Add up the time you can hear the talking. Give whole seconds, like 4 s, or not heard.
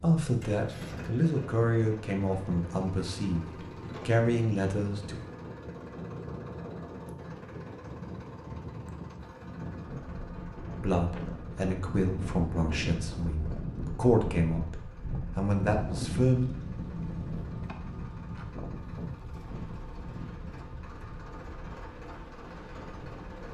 11 s.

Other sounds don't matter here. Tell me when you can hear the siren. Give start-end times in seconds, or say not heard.
not heard.